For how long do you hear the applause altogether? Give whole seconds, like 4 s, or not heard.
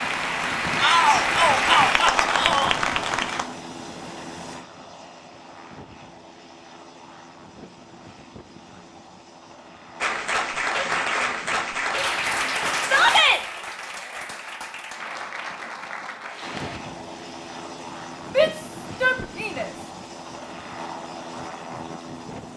10 s.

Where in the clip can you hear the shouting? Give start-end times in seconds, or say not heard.
0.8-2.8, 12.8-13.4, 18.3-19.7.